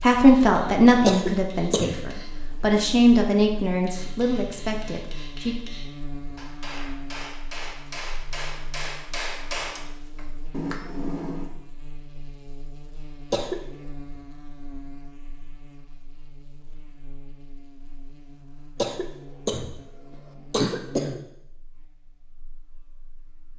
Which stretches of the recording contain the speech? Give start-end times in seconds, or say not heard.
0.0-5.5.